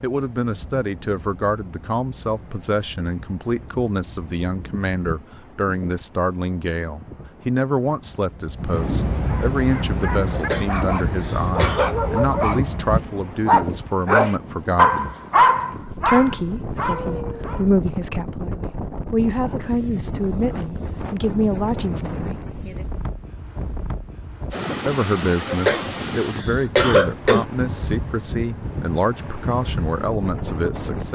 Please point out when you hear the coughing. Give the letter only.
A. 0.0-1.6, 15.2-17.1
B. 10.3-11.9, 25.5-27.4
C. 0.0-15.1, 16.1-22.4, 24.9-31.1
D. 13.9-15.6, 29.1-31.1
B.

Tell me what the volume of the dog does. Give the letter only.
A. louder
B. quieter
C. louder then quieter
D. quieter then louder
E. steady
C.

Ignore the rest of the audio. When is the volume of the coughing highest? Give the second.
27 s.